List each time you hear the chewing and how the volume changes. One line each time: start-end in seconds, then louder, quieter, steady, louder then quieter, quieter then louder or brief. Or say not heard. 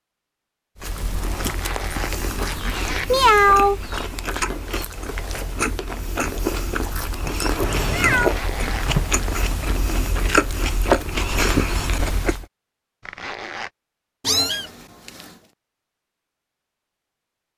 0.8-12.4 louder.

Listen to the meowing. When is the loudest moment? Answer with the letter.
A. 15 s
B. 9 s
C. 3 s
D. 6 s
C.